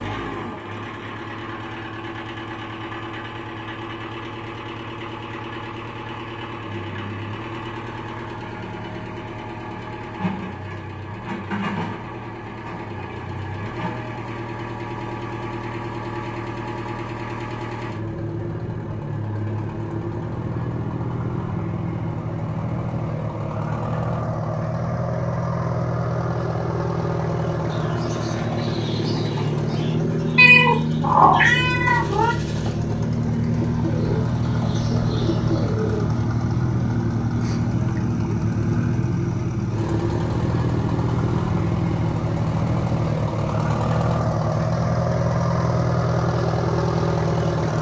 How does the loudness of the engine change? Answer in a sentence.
The volume of the engine goes up.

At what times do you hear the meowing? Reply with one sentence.
You can hear the meowing from 30.4 to 32.4 s.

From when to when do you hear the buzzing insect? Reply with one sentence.
You can't hear the buzzing insect here.